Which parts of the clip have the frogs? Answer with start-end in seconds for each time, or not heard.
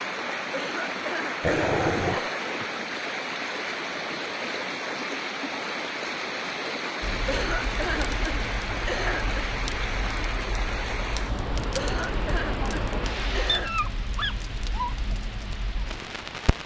not heard.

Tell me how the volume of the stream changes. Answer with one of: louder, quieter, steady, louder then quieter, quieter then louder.
quieter.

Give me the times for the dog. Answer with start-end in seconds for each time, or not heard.
1.4-2.2, 13.4-14.9.